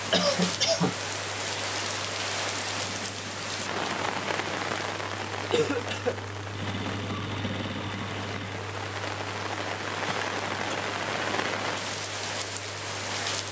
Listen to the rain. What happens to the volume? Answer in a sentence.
The volume of the rain goes down, then up.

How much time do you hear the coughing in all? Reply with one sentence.
You can hear the coughing for 2 seconds altogether.